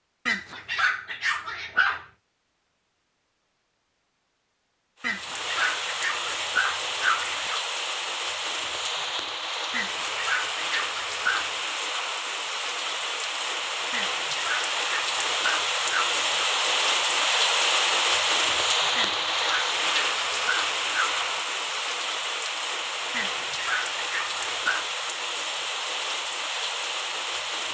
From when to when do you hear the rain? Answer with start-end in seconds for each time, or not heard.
5.0-27.6.